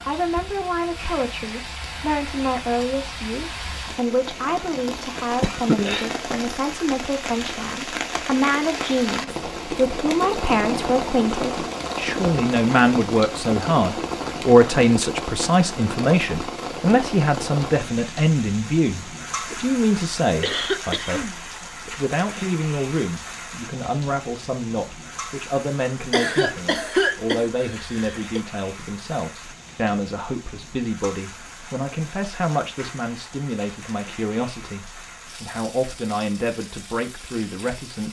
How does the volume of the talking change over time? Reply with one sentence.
The volume of the talking goes up, then down.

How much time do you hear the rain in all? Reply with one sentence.
You can hear the rain for 38 seconds altogether.